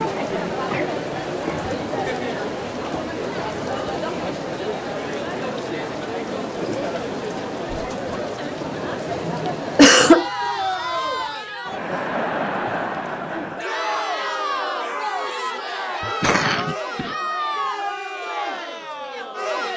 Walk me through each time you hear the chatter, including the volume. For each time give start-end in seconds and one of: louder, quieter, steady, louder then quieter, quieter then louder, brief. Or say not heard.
0.0-19.7 steady.